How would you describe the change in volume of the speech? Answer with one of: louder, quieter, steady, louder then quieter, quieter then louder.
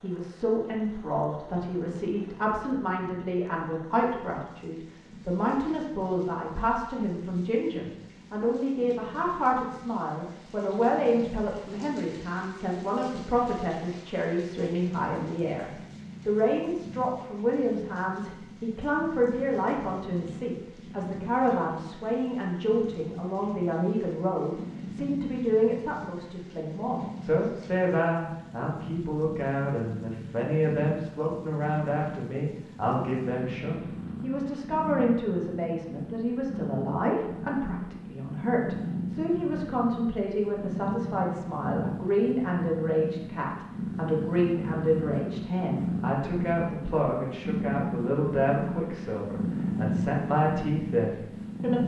steady.